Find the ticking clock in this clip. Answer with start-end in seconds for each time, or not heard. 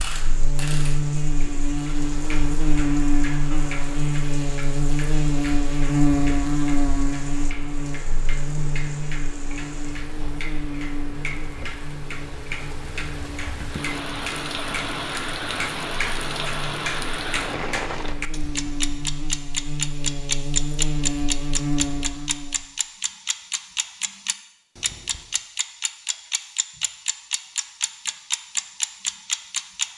0.0-29.9.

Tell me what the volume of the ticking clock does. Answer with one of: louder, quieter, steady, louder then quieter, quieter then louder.
louder.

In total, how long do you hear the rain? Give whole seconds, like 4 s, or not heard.
18 s.